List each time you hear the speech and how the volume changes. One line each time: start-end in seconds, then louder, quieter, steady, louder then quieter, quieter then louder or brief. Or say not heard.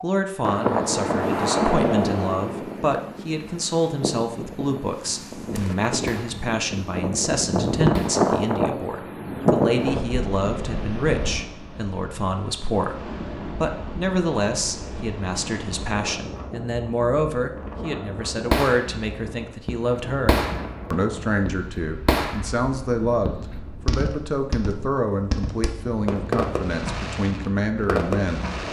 0.0-28.5 steady.